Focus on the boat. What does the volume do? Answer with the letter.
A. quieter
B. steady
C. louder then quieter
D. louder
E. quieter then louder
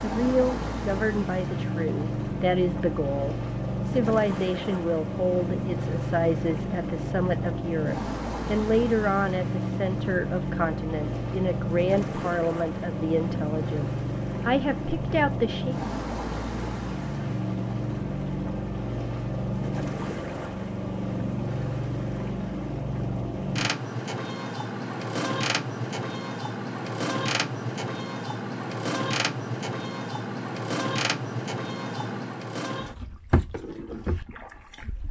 B.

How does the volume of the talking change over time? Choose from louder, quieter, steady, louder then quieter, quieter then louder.
steady.